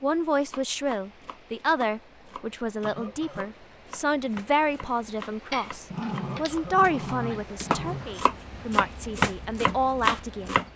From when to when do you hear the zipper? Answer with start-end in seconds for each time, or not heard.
not heard.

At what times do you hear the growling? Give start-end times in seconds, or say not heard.
5.5-8.1.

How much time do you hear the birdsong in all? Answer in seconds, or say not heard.
not heard.